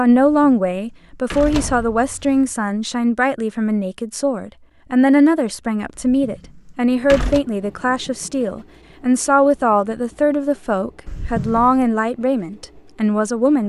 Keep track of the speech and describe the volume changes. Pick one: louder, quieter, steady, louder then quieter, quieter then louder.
steady.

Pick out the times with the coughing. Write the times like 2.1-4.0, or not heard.
not heard.